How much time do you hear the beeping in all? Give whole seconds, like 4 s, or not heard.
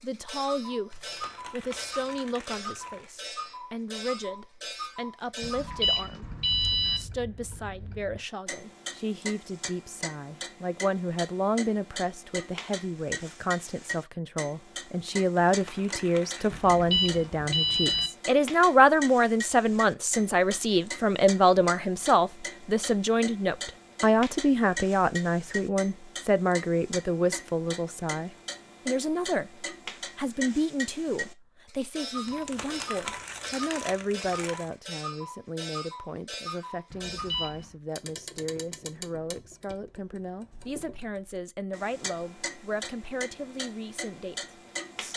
4 s.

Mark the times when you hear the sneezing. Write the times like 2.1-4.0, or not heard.
not heard.